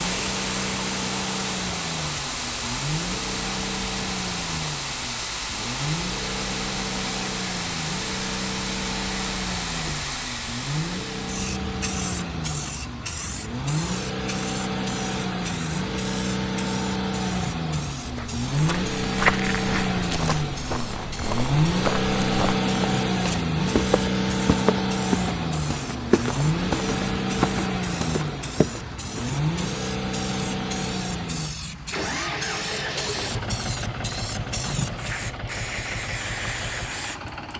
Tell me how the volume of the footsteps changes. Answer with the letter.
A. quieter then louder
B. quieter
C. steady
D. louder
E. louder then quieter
C.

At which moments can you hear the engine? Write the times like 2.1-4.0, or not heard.
0.0-37.5.